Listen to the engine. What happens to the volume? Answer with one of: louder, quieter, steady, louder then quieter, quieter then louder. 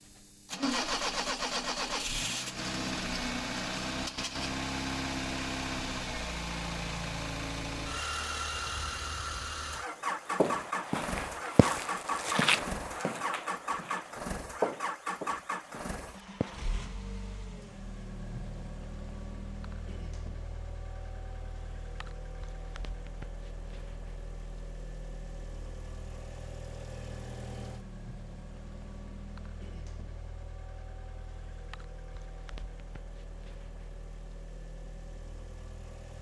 quieter.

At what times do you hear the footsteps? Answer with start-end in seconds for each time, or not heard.
10.3-16.8.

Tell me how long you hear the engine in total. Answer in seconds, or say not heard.
36 s.